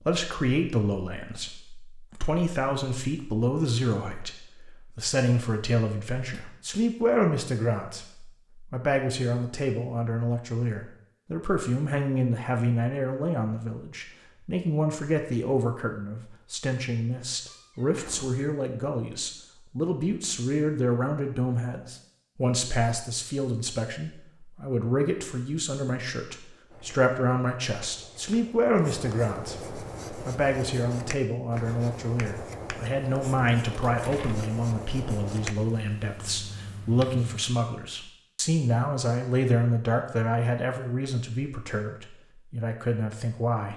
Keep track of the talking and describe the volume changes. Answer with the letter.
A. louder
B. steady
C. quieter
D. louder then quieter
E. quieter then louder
B.